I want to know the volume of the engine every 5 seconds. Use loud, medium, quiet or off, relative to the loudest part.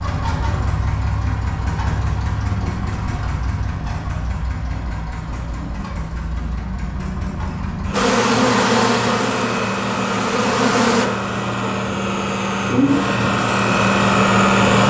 medium, medium, loud.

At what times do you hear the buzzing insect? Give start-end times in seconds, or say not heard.
7.9-11.1.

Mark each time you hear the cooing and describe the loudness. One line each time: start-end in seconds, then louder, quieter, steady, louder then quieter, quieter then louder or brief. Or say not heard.
not heard.